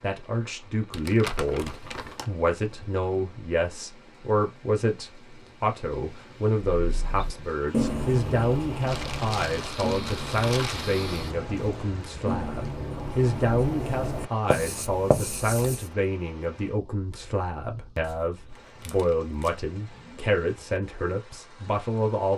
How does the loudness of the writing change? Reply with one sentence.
The volume of the writing goes down, then up.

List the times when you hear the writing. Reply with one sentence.
The writing can be heard from 6.8 to 15.9 s.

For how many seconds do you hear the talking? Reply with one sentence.
The talking can be heard for 22 seconds in total.